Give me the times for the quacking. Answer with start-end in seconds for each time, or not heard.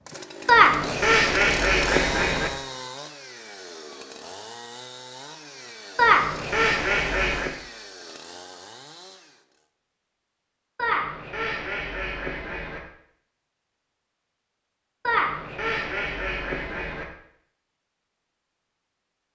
0.5-2.5, 6.0-7.5, 10.8-12.8, 15.1-17.1.